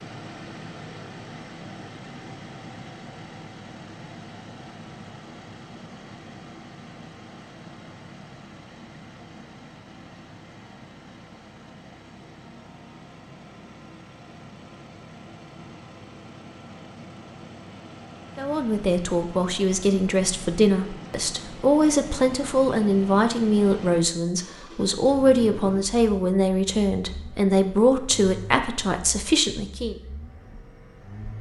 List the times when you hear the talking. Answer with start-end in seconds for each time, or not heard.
18.4-29.9.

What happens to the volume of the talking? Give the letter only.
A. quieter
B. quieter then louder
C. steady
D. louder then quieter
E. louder
C.